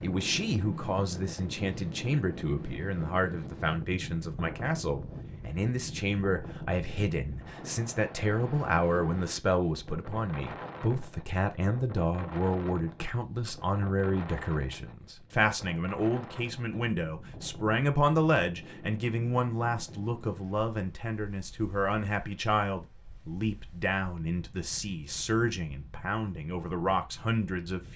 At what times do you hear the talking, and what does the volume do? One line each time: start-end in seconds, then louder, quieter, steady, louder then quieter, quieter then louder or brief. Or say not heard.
0.0-27.9 steady.